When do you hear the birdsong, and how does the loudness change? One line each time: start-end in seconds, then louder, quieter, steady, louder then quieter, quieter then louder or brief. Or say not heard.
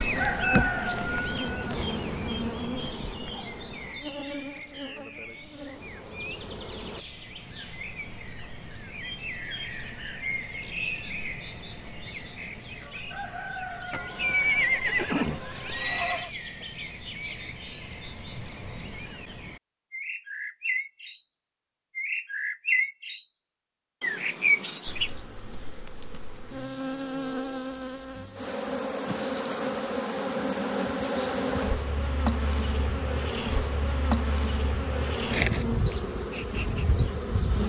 0.0-25.2 quieter then louder.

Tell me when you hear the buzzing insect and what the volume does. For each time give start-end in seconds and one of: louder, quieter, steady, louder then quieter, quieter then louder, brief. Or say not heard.
0.0-7.0 quieter
24.9-37.6 louder.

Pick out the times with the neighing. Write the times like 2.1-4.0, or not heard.
13.9-16.3.